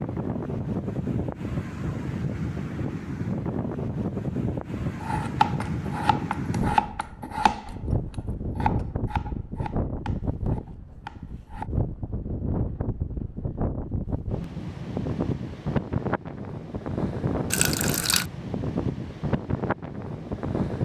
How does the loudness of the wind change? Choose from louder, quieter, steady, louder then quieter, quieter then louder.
steady.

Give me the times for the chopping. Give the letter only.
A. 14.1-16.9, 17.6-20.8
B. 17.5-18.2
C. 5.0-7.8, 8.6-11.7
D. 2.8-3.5
C.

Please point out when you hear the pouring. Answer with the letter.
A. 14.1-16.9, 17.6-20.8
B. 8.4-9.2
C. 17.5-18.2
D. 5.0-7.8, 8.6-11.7
C.